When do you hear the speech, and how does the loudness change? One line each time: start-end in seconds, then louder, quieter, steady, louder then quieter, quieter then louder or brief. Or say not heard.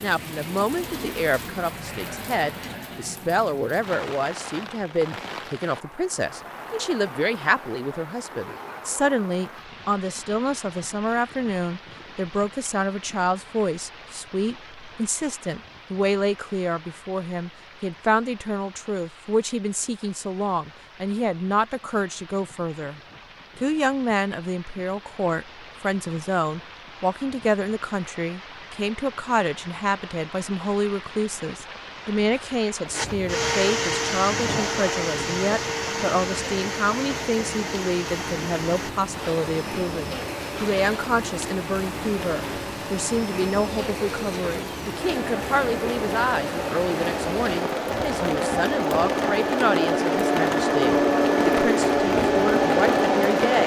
0.0-53.6 steady.